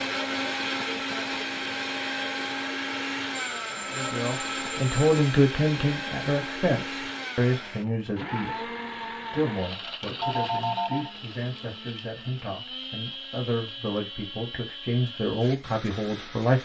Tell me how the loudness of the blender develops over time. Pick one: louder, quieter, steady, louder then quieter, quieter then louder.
quieter.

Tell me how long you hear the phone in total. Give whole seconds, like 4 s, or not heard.
3 s.